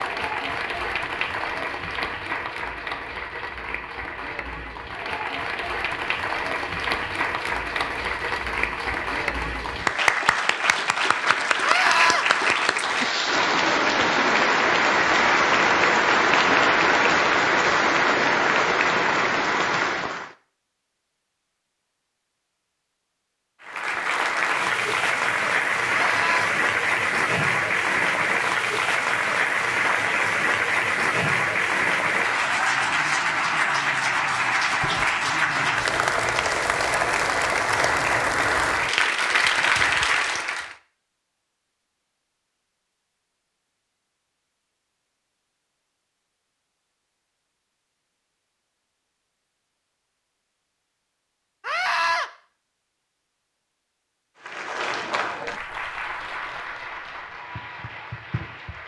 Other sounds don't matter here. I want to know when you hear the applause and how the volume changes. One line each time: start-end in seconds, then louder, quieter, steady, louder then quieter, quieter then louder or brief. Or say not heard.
0.0-20.3 louder
23.6-40.8 steady
54.4-58.8 quieter.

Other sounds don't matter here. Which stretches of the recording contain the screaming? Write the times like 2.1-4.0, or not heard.
11.6-12.2, 25.9-26.5, 51.6-52.3.